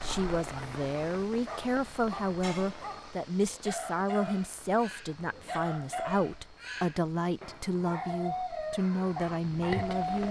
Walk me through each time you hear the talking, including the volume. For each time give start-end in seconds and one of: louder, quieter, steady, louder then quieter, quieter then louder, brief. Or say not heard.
0.0-10.2 steady.